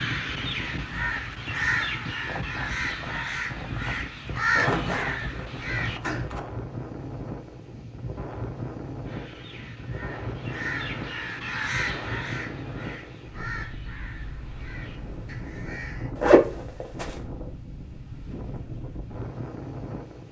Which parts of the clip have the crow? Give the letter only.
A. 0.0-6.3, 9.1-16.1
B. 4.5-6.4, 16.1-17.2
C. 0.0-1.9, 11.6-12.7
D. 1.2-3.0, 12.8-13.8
A.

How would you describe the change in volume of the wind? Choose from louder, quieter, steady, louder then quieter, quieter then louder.
steady.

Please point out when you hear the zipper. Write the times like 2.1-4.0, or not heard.
4.5-6.4, 16.1-17.2.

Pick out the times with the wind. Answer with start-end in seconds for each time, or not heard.
0.0-20.2.